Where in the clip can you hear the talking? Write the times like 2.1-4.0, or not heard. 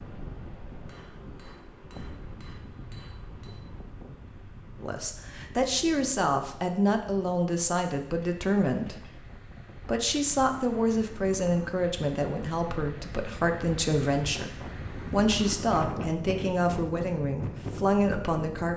4.8-18.7.